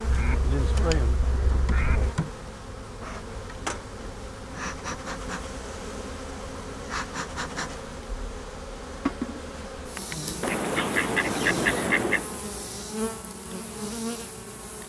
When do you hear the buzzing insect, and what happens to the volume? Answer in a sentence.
You can hear the buzzing insect from 0.0 to 14.8 s, at a steady volume.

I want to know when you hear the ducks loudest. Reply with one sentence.
The loudest moment of the ducks is at 12 seconds.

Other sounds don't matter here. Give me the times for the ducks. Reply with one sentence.
The ducks can be heard from 0.0 to 2.1 s and from 10.4 to 12.2 s.